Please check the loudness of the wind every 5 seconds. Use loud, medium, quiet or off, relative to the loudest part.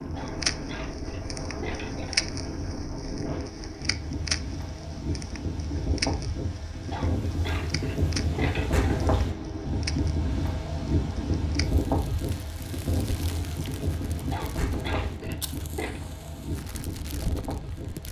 medium, loud, loud, medium.